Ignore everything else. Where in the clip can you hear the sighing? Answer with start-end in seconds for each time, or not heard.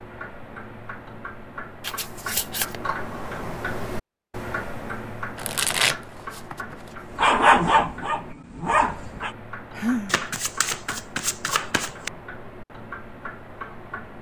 9.8-10.2.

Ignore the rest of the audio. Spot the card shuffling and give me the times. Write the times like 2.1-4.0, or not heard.
1.8-2.8, 5.3-7.3, 10.1-12.1.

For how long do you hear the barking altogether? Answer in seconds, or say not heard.
2 s.